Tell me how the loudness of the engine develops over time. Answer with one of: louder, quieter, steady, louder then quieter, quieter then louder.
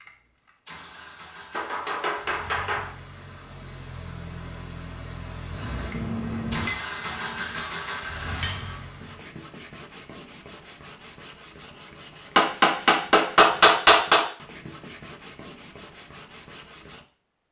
louder.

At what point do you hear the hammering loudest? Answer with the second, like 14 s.
14 s.